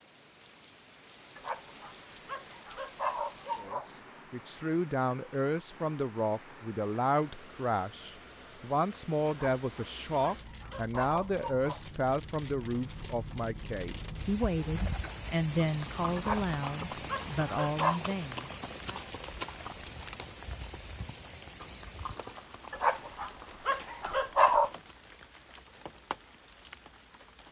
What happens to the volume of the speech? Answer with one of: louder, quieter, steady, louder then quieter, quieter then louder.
steady.